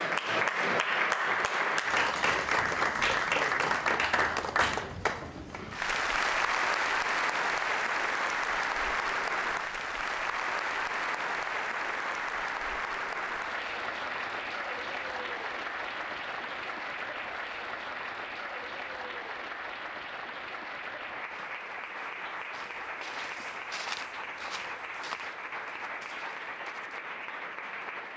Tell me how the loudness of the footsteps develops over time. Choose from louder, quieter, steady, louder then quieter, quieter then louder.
louder then quieter.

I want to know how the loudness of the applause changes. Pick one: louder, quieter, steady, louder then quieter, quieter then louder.
quieter.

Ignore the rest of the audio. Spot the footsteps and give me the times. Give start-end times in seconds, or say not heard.
21.1-27.1.